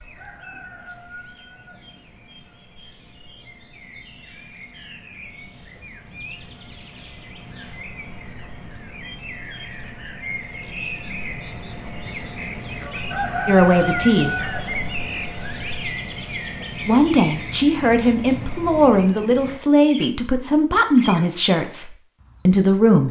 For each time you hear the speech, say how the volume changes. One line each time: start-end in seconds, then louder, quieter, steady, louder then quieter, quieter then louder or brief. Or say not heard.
13.4-14.3 brief
16.9-23.0 steady.